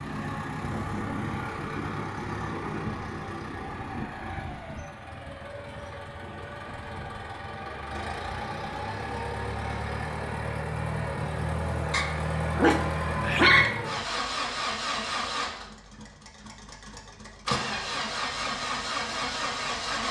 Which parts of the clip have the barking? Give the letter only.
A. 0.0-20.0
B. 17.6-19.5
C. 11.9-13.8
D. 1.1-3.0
C.